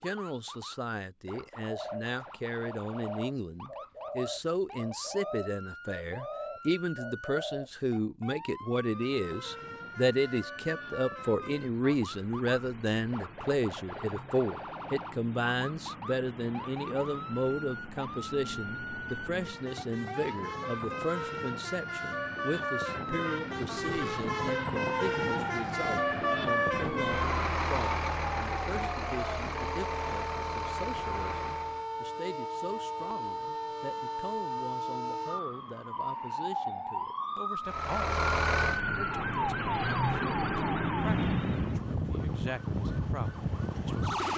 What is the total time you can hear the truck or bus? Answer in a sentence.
You can hear the truck or bus for 27 seconds altogether.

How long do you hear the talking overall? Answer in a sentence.
The talking can be heard for 44 seconds in total.